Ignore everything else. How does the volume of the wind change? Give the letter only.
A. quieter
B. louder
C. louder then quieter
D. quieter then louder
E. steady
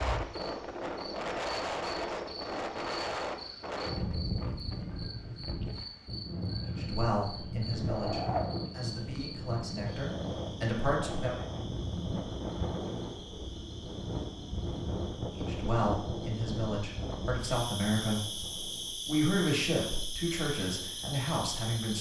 A.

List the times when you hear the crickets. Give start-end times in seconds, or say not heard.
0.0-21.9.